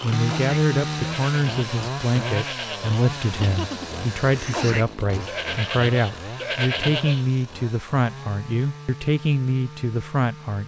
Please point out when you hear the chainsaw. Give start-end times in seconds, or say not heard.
0.0-10.6.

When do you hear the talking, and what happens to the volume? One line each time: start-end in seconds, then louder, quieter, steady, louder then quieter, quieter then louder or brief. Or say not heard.
0.0-10.6 steady.